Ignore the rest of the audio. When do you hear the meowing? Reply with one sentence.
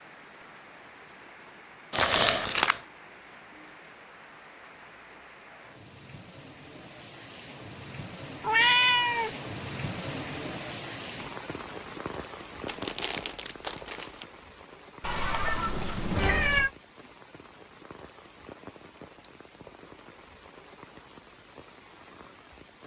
The meowing can be heard from 8.4 to 9.3 s and from 15.0 to 16.7 s.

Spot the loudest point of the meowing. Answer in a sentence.
The loudest moment of the meowing is at 9 seconds.